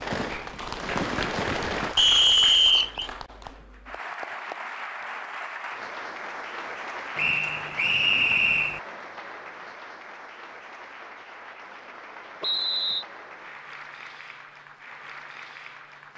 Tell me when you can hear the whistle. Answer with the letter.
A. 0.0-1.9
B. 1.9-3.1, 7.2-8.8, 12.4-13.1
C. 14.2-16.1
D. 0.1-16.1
B.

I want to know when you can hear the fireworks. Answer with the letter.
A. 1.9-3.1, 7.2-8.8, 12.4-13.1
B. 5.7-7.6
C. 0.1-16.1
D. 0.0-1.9
D.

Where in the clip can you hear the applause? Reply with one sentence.
You can hear the applause from 0.1 to 16.1 s.